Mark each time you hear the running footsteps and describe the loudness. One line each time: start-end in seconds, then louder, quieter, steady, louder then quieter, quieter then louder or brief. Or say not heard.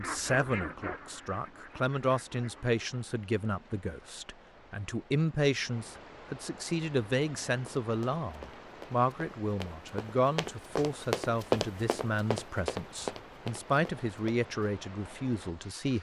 7.7-14.7 louder then quieter.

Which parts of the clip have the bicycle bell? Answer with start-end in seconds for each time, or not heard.
not heard.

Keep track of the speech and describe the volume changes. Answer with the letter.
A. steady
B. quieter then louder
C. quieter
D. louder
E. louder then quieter
A.